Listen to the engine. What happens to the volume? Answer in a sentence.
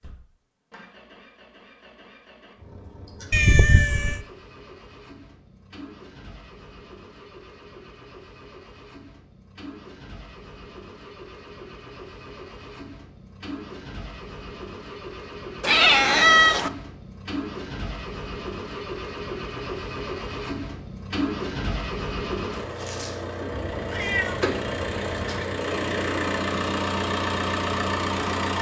The volume of the engine goes up.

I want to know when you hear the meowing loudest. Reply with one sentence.
The loudest moment of the meowing is at 16 seconds.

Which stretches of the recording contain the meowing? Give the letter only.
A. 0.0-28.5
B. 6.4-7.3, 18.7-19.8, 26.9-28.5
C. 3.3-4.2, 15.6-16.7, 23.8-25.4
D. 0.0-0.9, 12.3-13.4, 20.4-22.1
C.